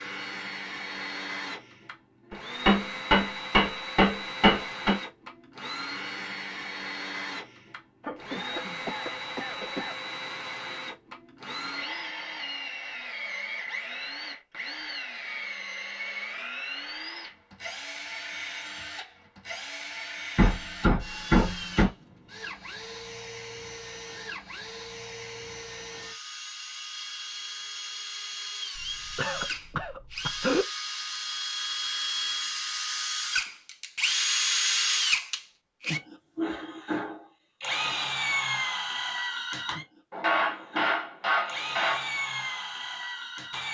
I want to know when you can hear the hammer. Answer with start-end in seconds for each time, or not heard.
2.3-5.0, 20.4-21.9, 40.1-42.1.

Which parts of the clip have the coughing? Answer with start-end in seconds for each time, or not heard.
8.0-9.9, 28.8-30.6.